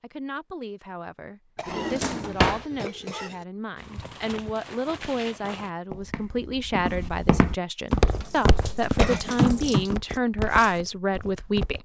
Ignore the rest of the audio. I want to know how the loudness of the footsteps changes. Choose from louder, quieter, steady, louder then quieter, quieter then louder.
louder then quieter.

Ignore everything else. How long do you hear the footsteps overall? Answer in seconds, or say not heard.
8 s.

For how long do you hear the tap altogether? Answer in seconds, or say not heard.
2 s.